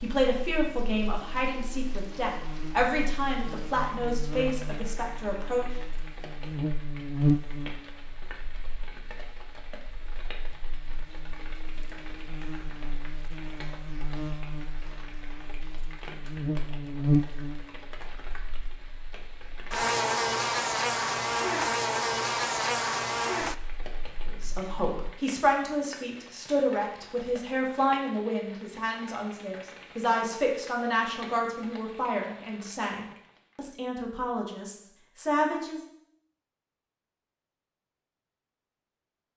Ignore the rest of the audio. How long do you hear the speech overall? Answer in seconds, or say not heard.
17 s.